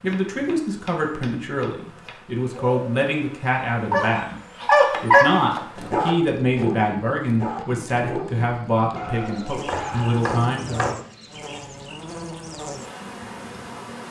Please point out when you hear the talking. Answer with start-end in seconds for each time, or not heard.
0.0-10.9.